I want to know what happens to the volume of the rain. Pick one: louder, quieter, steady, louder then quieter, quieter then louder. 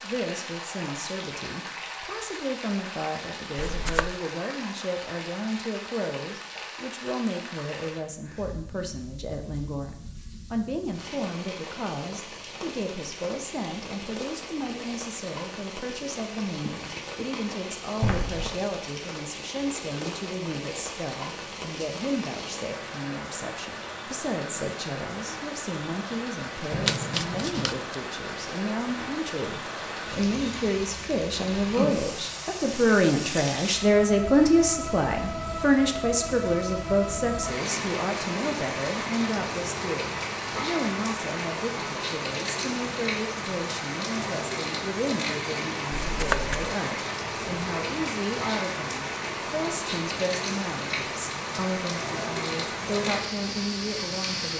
louder.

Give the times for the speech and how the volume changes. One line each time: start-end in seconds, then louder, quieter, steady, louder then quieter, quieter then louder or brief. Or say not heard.
0.0-54.5 louder then quieter.